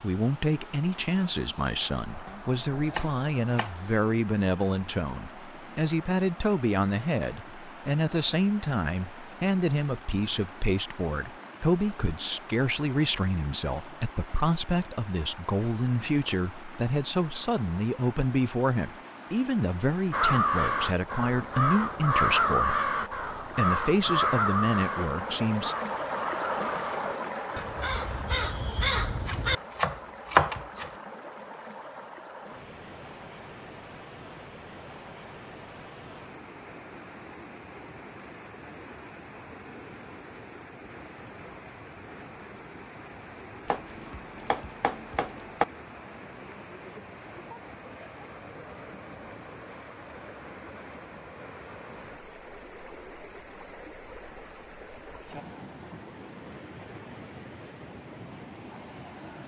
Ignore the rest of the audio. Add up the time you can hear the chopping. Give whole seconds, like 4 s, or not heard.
5 s.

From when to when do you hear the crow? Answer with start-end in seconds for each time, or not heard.
20.1-29.6.